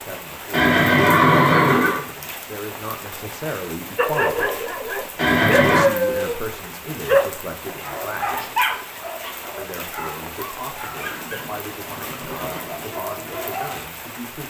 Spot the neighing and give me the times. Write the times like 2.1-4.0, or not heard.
0.5-2.0, 5.2-5.8, 10.9-12.9.